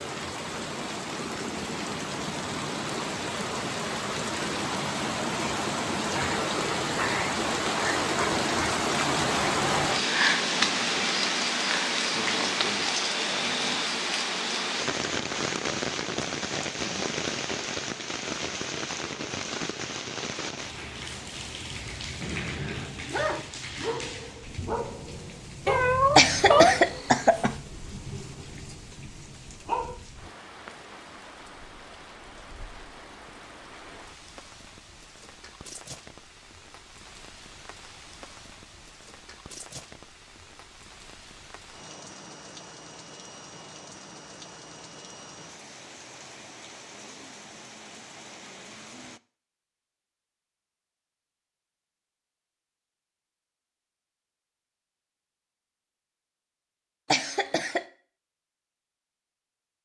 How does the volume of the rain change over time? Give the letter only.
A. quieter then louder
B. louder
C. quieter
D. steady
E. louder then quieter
C.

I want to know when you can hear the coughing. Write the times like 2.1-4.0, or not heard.
26.1-27.6, 57.1-57.8.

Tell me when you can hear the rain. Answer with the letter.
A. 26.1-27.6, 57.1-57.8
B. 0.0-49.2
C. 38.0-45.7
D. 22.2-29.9
B.